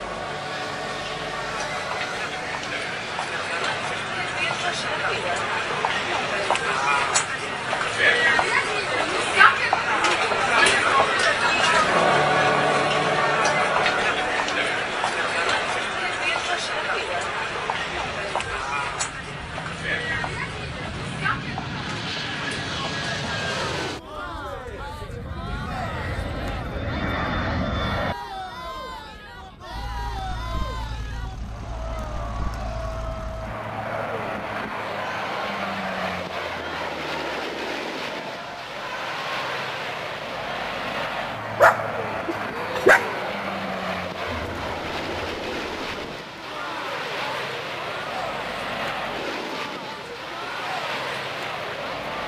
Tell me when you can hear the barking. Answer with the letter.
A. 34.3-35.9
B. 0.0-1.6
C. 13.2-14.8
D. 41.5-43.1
D.